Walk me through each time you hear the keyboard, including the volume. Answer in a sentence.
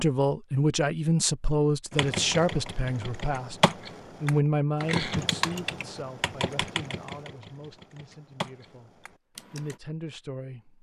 The keyboard can be heard from 1.9 to 9.8 s, getting quieter.